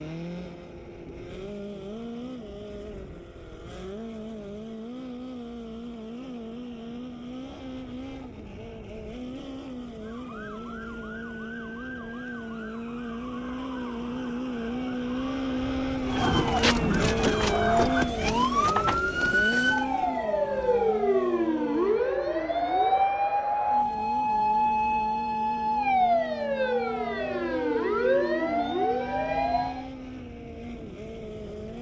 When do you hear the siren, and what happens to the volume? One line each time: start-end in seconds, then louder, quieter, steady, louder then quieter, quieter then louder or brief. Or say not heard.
10.0-29.9 louder.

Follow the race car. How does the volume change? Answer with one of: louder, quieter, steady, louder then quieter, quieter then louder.
louder then quieter.